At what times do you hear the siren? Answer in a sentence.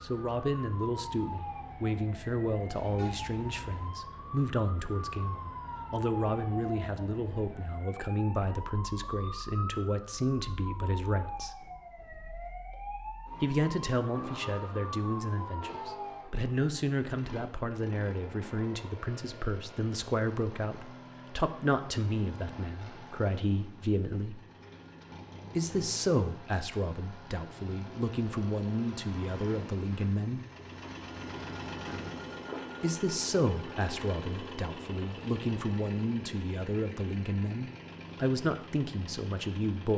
The siren can be heard from 0.0 to 16.3 s.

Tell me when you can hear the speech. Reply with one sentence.
The speech can be heard from 0.0 to 11.7 s, from 13.4 to 24.4 s, from 25.6 to 30.4 s and from 32.8 to 39.9 s.